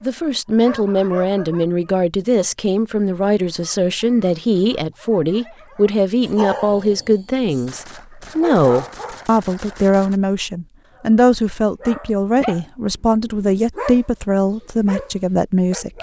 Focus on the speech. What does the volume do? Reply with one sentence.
The volume of the speech stays about the same.